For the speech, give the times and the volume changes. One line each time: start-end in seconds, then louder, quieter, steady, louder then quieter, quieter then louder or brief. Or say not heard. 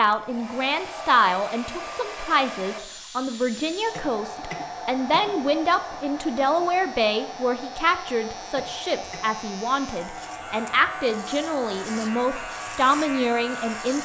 0.0-14.0 steady.